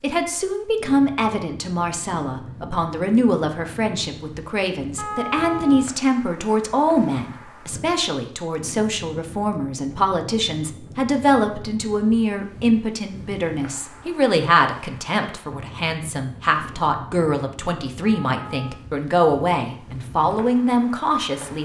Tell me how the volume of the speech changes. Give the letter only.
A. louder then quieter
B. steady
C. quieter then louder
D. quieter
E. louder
B.